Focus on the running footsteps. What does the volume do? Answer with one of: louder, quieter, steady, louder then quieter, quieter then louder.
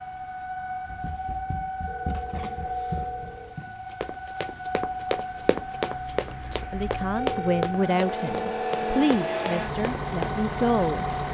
louder then quieter.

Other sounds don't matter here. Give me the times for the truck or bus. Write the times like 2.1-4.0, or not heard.
0.0-11.2.